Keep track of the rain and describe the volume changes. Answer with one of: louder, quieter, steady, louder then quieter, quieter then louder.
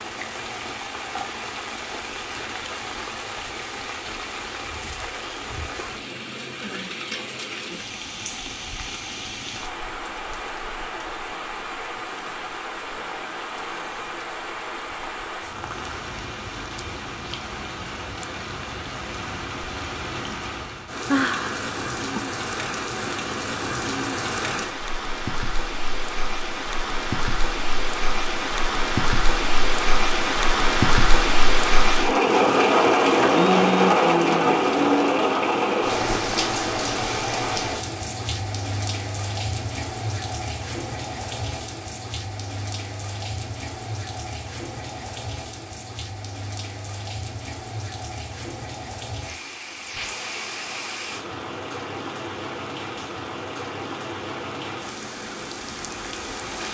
louder then quieter.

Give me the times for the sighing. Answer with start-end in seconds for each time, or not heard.
21.1-22.2, 33.2-35.1.